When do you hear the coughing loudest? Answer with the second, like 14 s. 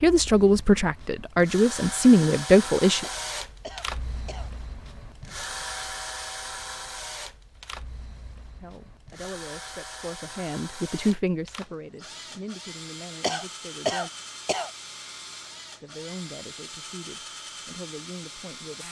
14 s.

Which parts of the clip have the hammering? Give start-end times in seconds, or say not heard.
not heard.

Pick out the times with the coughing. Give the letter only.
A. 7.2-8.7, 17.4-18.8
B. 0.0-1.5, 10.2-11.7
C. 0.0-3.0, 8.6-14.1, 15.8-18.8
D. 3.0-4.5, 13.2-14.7
D.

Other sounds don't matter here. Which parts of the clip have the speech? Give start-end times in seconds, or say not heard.
0.0-3.0, 8.6-14.1, 15.8-18.8.